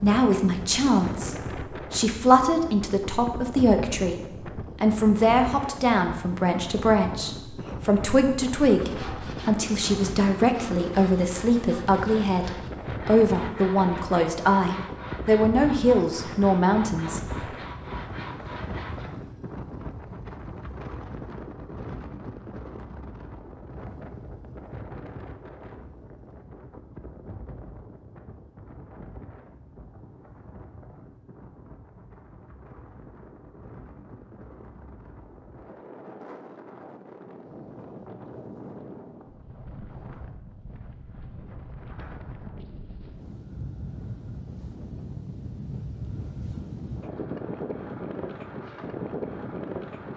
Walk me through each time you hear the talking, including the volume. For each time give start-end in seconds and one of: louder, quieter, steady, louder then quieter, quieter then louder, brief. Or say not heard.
0.0-17.6 steady.